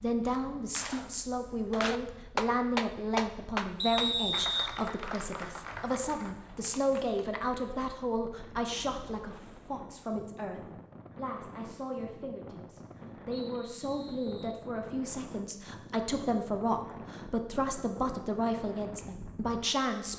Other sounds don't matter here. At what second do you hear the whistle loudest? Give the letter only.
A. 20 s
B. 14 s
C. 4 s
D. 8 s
C.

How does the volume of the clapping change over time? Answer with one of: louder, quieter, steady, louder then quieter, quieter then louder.
louder then quieter.